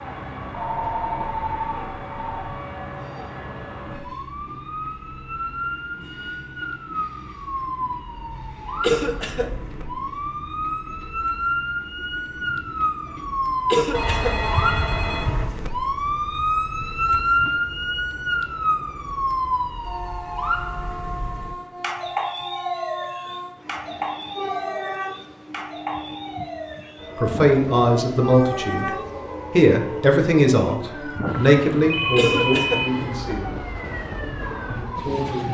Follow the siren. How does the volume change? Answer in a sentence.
The volume of the siren goes up, then down.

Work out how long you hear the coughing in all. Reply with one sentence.
You can hear the coughing for 2 seconds altogether.